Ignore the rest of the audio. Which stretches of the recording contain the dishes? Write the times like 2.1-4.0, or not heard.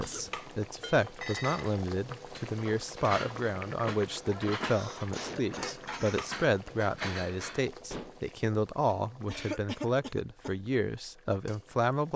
0.8-8.2.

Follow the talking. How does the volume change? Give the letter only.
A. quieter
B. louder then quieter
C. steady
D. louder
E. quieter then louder
C.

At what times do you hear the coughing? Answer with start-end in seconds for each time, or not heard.
0.0-0.6, 4.6-6.3, 9.2-10.6.